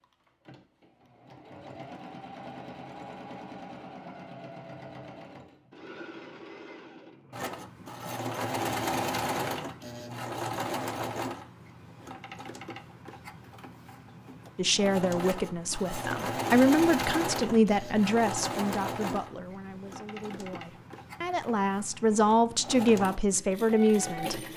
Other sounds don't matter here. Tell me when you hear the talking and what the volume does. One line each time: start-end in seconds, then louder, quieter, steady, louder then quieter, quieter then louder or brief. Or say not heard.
14.6-24.4 quieter then louder.